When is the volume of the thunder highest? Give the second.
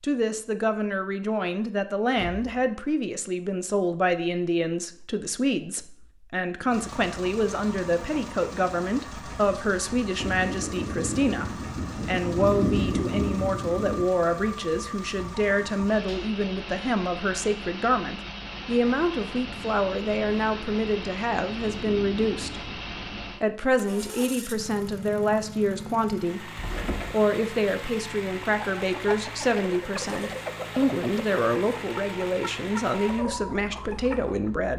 13 s.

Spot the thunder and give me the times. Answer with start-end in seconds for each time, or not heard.
10.2-14.1, 19.6-23.3.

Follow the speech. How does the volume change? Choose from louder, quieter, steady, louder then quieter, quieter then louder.
steady.